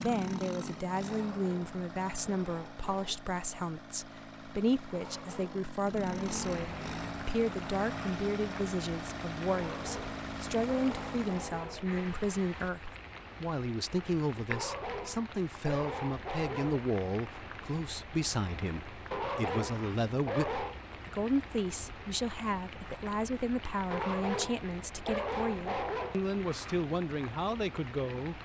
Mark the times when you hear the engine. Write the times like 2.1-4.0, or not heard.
0.0-11.7.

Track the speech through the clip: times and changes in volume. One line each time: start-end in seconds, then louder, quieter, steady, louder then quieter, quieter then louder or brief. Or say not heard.
0.0-28.4 steady.